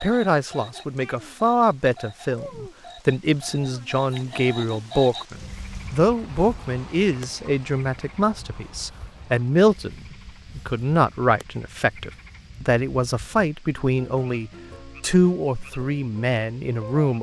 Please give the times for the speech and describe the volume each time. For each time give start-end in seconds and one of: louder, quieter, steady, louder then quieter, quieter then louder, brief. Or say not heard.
0.0-17.1 steady.